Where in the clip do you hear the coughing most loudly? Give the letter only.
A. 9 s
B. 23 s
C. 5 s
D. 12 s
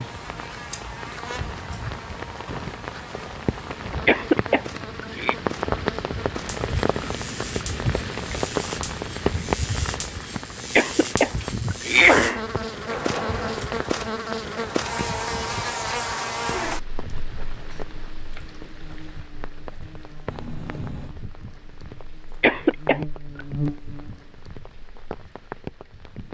D.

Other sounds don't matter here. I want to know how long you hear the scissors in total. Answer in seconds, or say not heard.
3 s.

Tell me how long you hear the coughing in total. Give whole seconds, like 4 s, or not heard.
4 s.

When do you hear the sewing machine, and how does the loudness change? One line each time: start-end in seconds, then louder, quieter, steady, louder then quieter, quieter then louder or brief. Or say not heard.
not heard.